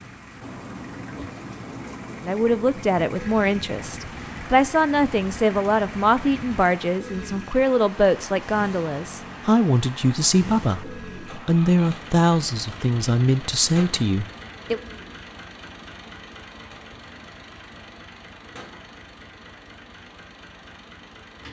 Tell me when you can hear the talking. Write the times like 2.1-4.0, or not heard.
2.2-14.8.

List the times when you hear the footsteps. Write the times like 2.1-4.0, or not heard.
not heard.